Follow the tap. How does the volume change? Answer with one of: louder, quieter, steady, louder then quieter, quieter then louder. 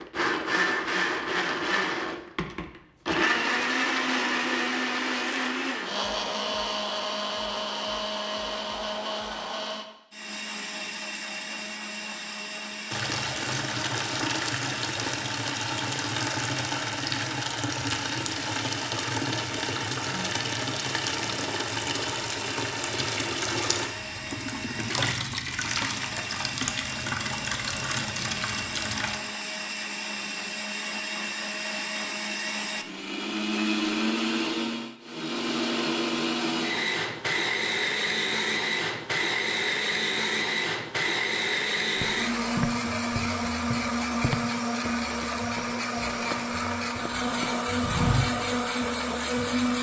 steady.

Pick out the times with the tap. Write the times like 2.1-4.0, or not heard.
12.9-29.2.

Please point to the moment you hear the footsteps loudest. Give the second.
48 s.